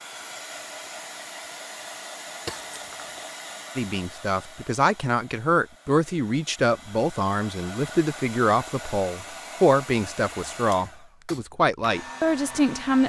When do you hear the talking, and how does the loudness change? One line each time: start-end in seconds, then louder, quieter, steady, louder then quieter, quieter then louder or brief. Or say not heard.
3.8-13.0 steady.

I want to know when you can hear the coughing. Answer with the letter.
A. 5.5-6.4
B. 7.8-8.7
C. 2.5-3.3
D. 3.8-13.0
C.